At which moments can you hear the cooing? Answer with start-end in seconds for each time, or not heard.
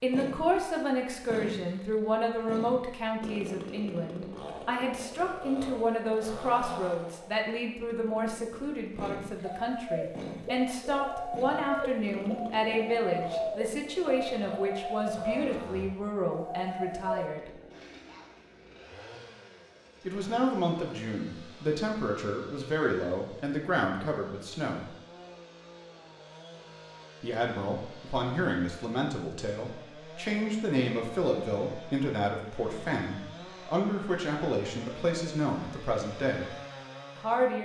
9.4-17.3.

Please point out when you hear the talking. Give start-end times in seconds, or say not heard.
0.0-17.5, 20.0-24.9, 27.2-36.5, 37.1-37.6.